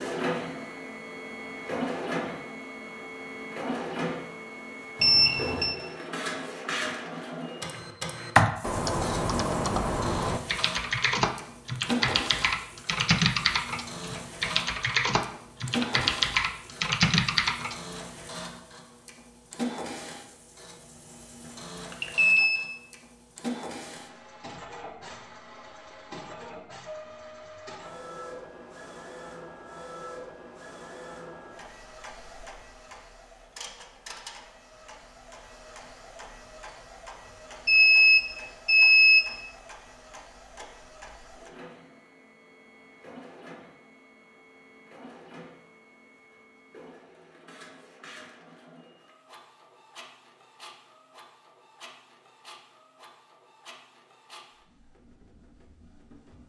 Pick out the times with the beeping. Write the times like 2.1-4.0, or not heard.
5.0-5.8, 21.9-22.6, 37.6-39.3.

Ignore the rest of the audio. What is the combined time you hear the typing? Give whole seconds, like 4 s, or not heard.
10 s.